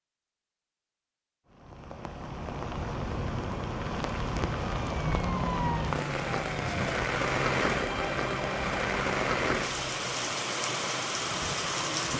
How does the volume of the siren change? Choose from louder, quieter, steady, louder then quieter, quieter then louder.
steady.